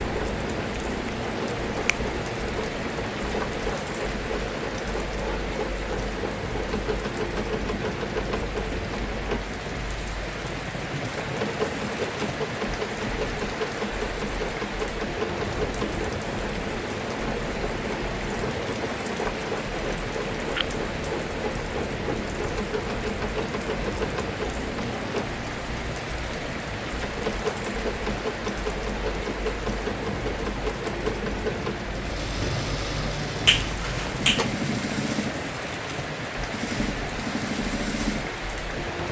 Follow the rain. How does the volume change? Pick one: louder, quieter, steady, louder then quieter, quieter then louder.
steady.